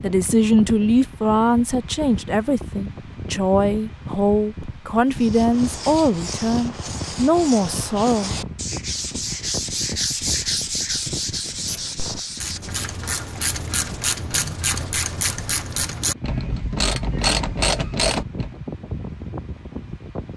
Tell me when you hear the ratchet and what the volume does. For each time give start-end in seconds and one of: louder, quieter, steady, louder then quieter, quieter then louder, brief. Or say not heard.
11.6-18.6 louder.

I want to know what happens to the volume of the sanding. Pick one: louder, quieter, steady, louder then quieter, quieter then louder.
louder then quieter.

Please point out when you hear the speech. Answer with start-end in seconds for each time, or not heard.
0.0-8.3.